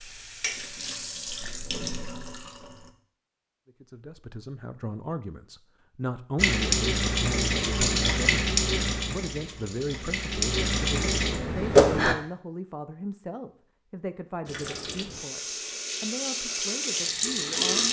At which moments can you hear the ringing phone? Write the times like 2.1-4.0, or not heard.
not heard.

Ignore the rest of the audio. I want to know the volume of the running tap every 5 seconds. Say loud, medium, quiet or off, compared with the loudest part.
quiet, loud, loud, medium.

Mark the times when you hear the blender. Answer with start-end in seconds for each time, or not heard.
not heard.